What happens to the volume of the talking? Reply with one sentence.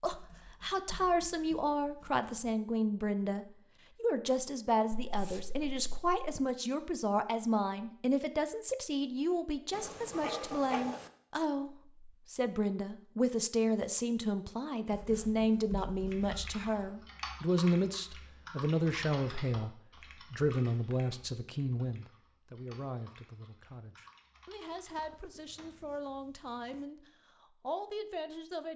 The loudness of the talking goes down.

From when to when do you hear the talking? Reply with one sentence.
You can hear the talking from 0.0 to 28.7 s.